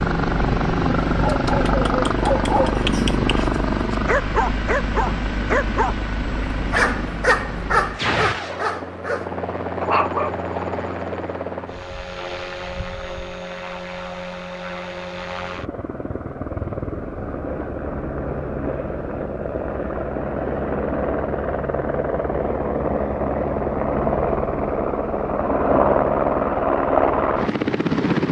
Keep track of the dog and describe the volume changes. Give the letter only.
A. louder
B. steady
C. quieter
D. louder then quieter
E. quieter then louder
B.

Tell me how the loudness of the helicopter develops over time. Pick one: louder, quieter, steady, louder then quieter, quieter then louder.
quieter then louder.